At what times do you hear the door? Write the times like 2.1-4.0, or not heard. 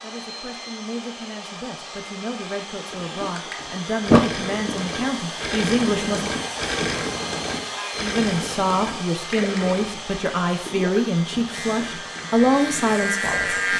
4.1-4.8.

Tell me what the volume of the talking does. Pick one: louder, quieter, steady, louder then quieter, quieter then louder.
louder.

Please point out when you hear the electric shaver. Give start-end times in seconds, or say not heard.
11.5-13.7.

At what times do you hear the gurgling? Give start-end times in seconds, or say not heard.
2.9-13.2.